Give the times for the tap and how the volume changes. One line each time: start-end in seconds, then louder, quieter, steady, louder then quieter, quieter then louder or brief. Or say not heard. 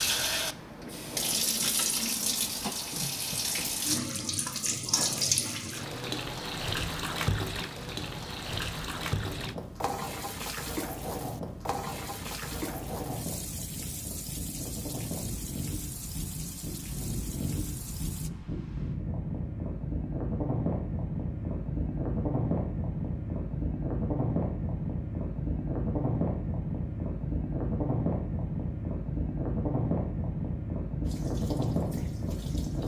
0.0-18.3 quieter
31.0-32.8 brief.